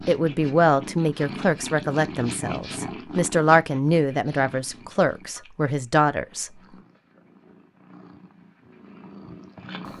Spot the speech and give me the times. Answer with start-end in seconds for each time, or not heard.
0.1-6.5.